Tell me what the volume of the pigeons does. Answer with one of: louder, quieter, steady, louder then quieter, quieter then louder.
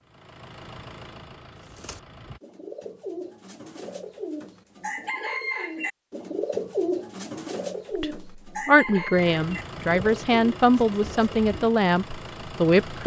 louder then quieter.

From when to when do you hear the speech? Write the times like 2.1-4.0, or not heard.
8.0-13.0.